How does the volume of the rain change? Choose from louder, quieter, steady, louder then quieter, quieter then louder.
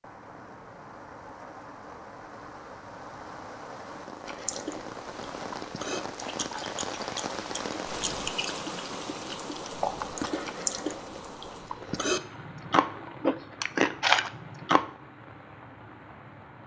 louder then quieter.